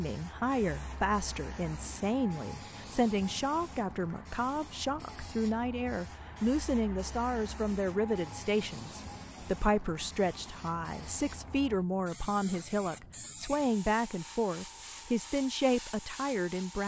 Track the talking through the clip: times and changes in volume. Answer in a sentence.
The talking can be heard from 0.0 to 16.8 s, at a steady volume.